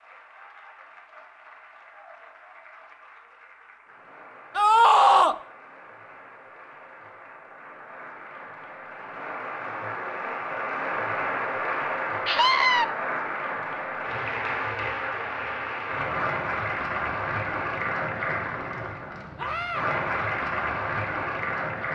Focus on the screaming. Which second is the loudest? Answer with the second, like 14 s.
5 s.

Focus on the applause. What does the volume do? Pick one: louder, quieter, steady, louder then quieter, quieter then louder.
louder.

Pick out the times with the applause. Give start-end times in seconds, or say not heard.
0.0-21.9.